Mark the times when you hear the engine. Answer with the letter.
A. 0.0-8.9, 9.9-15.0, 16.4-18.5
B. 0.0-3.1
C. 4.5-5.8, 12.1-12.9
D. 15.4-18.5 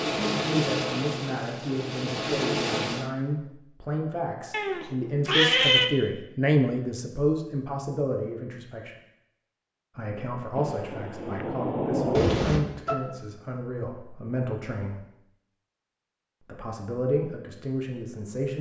B.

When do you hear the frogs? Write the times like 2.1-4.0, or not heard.
not heard.